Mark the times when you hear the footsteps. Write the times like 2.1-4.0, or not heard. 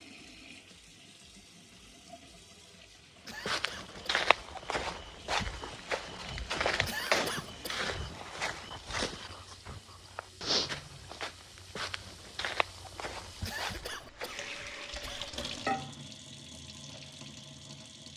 3.2-14.8.